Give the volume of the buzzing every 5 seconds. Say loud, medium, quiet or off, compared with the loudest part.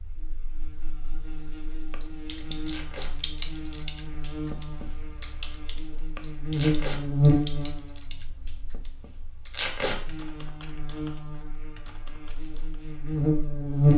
quiet, loud, loud.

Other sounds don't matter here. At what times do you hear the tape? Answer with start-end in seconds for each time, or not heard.
2.6-3.1, 6.5-7.0, 9.5-9.9.